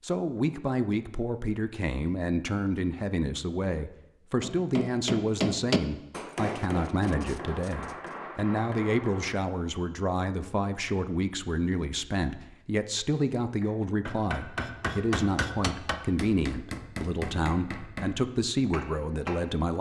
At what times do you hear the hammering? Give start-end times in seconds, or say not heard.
4.4-9.4, 13.6-19.7.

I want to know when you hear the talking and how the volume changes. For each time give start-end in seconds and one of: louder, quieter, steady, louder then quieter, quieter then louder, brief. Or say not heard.
0.0-19.7 steady.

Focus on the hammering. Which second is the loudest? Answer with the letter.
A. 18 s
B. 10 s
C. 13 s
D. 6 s
D.